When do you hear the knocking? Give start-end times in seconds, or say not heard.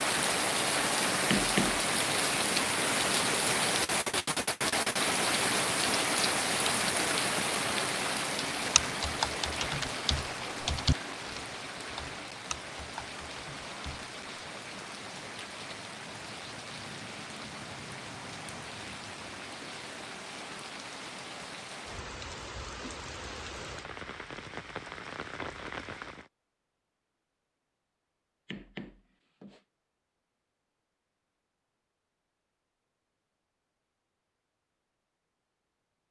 1.2-1.8, 28.4-29.6.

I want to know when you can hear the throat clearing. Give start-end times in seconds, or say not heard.
not heard.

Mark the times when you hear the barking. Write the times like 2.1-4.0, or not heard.
not heard.